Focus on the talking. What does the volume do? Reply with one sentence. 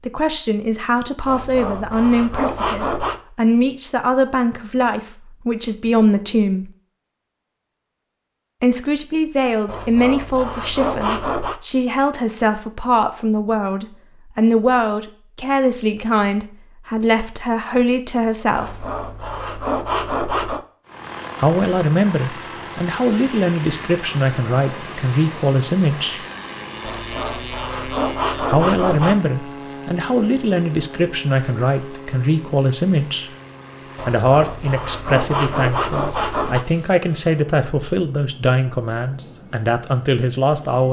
The volume of the talking stays about the same.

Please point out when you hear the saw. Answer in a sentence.
You can hear the saw from 1.2 to 3.2 s, from 9.7 to 11.6 s, from 18.5 to 20.6 s, from 26.8 to 29.2 s and from 34.0 to 36.6 s.